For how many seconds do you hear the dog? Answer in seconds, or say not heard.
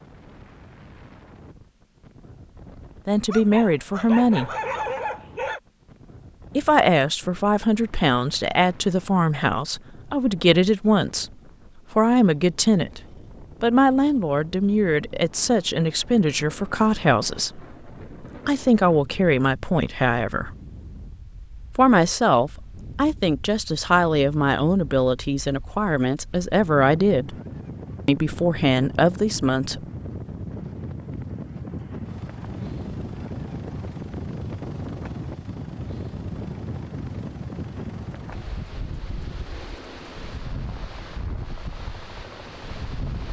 2 s.